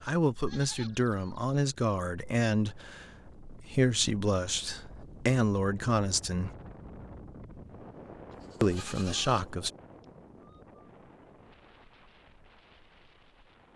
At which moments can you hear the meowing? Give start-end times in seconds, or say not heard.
not heard.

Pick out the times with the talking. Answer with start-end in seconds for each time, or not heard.
0.0-6.5, 8.6-9.7.